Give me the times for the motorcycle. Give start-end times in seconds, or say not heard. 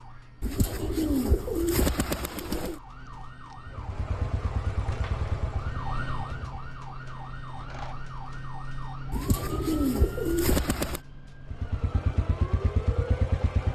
3.6-6.7, 11.5-13.7.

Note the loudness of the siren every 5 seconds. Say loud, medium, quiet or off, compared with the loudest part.
medium, loud, loud.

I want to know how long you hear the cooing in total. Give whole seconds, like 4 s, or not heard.
4 s.